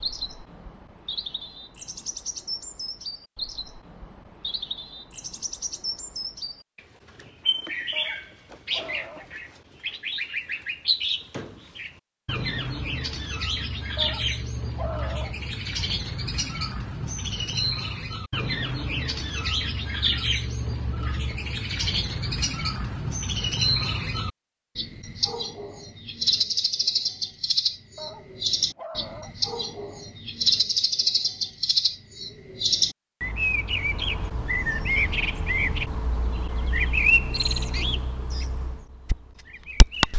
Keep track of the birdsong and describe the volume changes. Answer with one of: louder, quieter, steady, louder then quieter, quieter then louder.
louder.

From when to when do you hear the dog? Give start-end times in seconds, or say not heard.
7.9-9.3, 13.9-15.4, 27.9-29.4.